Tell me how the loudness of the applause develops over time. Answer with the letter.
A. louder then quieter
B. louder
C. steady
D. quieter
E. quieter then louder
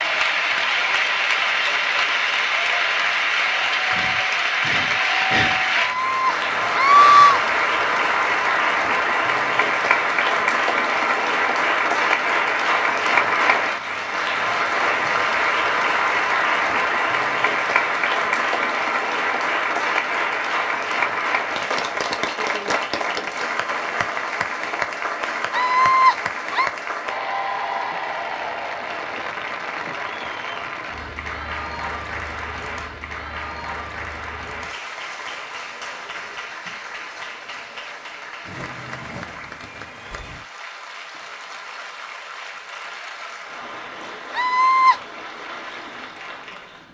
D.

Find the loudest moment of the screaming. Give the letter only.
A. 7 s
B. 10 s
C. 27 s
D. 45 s
A.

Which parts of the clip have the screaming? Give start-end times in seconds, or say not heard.
5.8-7.4, 25.5-26.7, 44.4-45.0.